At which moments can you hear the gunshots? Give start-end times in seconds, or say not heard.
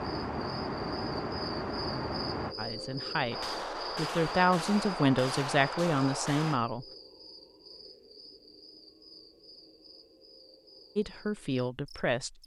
3.3-6.6.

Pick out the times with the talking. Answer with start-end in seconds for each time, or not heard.
2.5-6.8, 10.9-12.4.